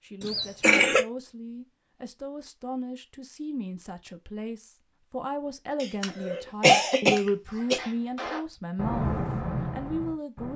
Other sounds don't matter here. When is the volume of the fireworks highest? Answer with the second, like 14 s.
9 s.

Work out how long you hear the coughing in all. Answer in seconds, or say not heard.
3 s.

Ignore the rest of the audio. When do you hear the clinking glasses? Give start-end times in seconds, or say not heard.
not heard.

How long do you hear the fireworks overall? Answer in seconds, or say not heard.
3 s.